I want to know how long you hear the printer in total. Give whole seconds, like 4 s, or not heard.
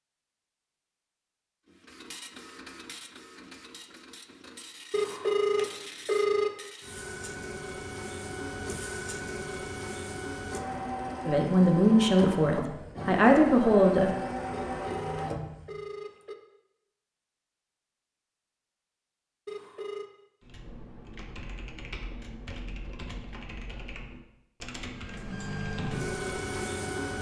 16 s.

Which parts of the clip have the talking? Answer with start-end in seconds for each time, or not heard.
11.2-14.1.